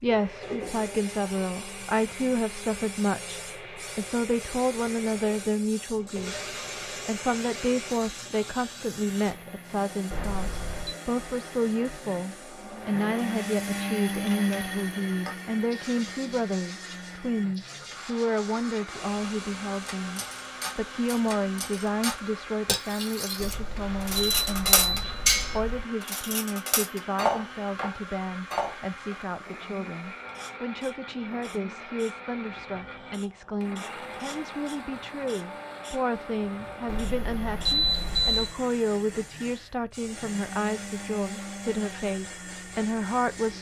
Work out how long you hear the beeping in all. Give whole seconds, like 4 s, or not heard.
5 s.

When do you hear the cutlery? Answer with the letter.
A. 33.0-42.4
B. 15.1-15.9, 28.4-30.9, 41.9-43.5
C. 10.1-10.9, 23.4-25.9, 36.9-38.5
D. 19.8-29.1
D.